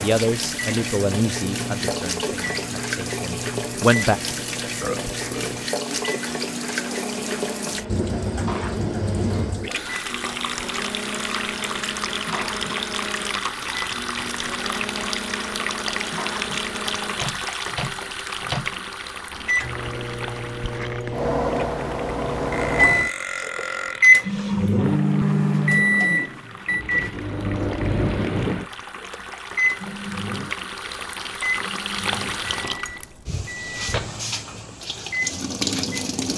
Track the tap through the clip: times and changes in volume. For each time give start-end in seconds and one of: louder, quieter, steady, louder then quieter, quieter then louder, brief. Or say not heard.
0.0-36.3 quieter then louder.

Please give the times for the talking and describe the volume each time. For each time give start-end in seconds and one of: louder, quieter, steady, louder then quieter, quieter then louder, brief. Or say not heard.
0.0-4.2 quieter.